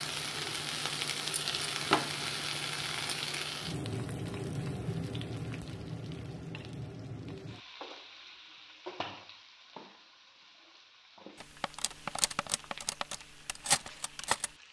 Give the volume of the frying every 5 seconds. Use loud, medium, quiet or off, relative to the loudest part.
loud, medium, quiet.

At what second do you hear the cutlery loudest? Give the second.
14 s.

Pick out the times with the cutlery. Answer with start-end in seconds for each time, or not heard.
11.4-14.5.